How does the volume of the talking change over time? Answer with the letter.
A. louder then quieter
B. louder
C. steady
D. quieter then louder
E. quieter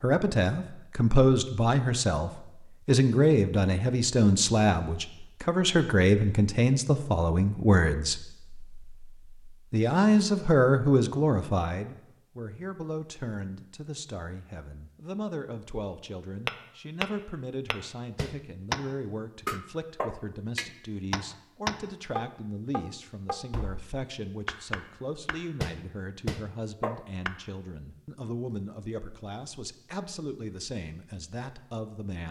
E.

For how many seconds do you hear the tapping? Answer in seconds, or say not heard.
11 s.